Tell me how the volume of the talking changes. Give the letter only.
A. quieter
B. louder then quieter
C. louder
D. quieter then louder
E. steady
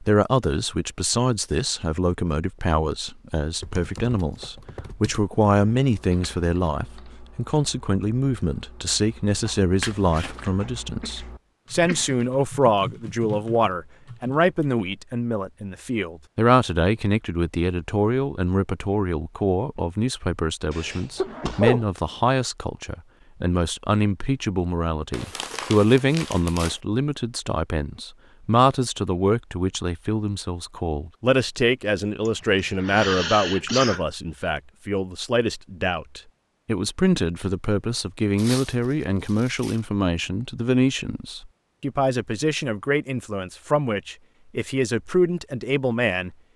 E.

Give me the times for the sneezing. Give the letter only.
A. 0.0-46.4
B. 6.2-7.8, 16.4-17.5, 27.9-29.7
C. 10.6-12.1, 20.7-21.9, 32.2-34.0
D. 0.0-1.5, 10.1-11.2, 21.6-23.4
C.